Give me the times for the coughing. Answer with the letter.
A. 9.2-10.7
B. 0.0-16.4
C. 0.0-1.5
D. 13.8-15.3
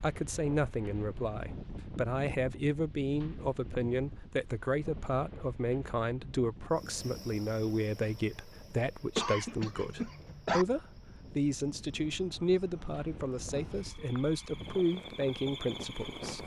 A.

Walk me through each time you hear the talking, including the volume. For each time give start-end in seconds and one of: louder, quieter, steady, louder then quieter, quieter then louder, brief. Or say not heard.
0.0-16.4 steady.